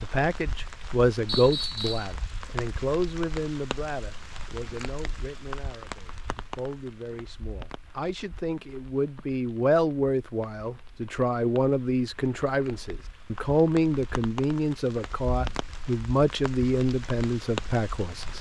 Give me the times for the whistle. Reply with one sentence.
You can hear the whistle from 1.2 to 2.1 s.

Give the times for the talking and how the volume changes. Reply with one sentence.
The talking can be heard from 0.0 to 18.3 s, getting quieter then louder.